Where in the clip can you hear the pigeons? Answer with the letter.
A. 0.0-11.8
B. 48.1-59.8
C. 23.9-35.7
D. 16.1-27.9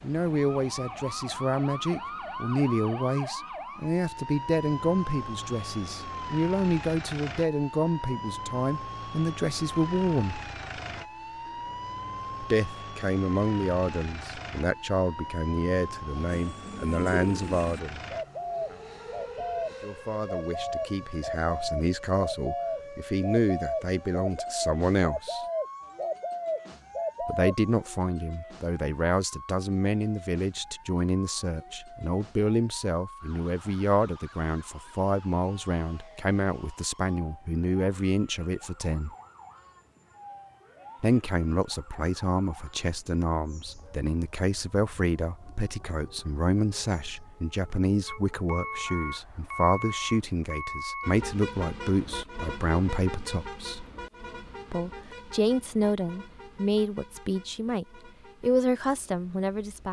D.